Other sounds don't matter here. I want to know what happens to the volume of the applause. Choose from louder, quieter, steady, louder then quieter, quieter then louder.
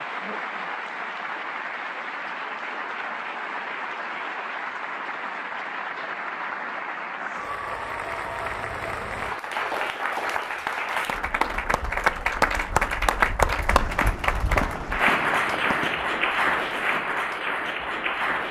louder.